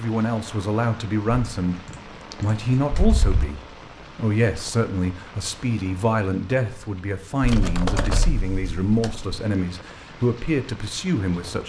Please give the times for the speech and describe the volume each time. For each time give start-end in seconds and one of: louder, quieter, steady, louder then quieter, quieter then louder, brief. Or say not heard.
0.0-1.8 brief
2.4-11.6 steady.